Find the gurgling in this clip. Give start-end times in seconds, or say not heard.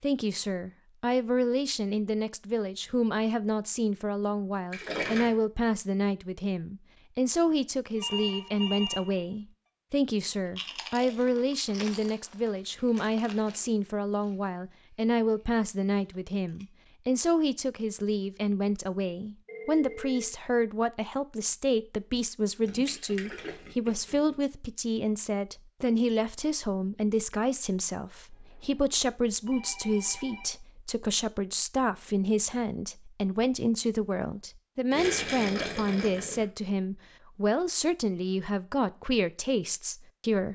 4.7-5.3, 22.6-24.4, 34.9-36.5.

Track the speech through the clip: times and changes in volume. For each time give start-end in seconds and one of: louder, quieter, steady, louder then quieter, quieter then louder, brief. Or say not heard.
0.0-40.5 steady.